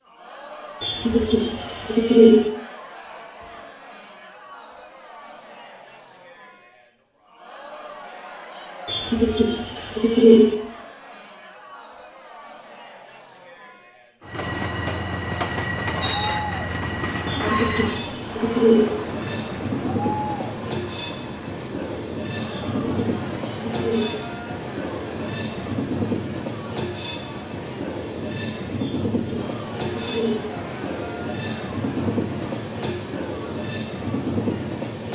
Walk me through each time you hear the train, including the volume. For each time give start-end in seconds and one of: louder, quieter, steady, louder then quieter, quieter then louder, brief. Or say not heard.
14.2-35.0 steady.